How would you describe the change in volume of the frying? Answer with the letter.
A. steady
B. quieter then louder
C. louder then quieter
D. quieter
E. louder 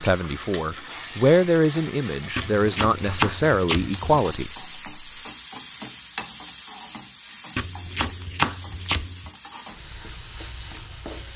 D.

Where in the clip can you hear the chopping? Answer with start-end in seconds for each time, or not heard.
2.4-4.2, 7.5-9.3.